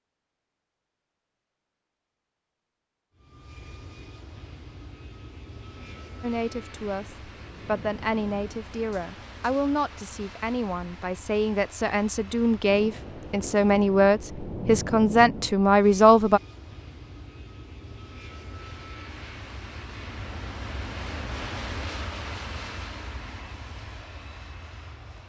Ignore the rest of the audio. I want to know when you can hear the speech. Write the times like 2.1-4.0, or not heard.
6.2-16.4.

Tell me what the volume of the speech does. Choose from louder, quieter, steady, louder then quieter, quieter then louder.
louder.